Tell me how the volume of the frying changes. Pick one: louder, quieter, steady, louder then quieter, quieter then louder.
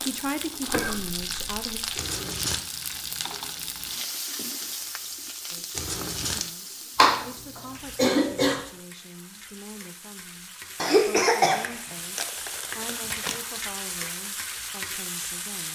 quieter then louder.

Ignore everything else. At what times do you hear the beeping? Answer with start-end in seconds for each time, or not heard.
not heard.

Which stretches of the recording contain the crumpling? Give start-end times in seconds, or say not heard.
1.9-2.6, 5.7-6.5, 11.9-13.4.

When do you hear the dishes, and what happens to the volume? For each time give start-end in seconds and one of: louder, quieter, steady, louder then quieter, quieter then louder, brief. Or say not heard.
not heard.